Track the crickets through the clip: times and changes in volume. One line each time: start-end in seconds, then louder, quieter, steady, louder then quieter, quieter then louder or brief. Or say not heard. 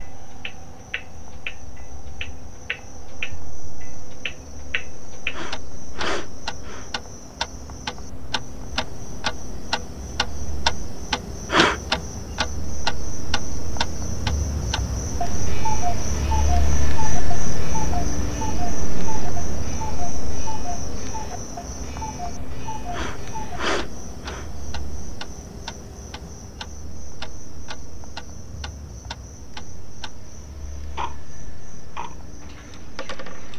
0.0-33.5 louder then quieter.